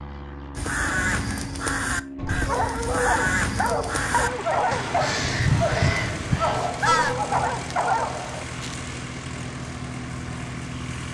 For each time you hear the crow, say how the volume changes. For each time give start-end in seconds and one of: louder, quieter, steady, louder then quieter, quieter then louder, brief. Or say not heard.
0.6-7.2 steady.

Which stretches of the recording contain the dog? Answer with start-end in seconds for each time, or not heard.
2.3-8.8.